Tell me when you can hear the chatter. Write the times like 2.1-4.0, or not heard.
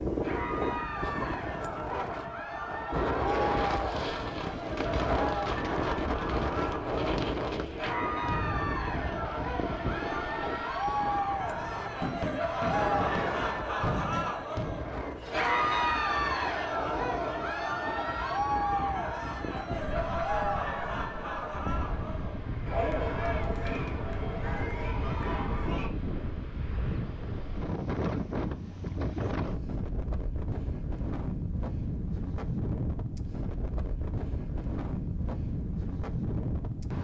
0.1-25.9.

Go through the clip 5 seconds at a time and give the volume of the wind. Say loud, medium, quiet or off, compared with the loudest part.
loud, loud, medium, medium, medium, loud, loud, loud.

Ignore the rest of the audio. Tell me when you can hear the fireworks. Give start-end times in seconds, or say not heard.
3.5-14.9.